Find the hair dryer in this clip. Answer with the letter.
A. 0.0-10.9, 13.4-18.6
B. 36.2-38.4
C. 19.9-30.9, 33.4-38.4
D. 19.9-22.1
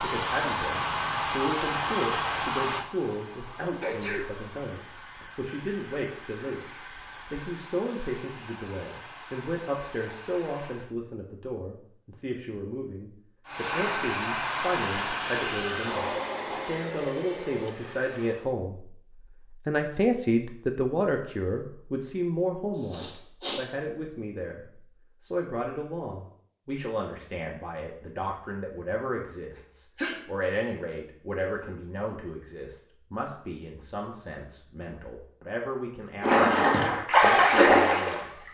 A.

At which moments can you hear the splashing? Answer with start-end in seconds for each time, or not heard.
36.2-38.4.